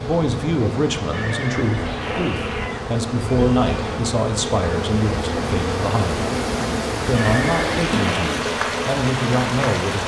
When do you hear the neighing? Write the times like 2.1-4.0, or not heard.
1.1-2.7, 7.1-8.3.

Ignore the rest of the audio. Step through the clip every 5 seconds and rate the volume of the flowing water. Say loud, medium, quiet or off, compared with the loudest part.
medium, loud.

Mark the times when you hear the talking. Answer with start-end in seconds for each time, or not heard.
0.0-6.2, 7.0-10.0.